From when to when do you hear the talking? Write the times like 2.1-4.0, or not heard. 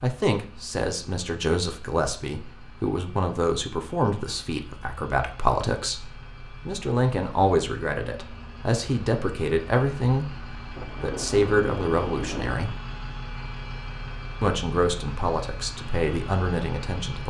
0.0-12.8, 14.4-17.2.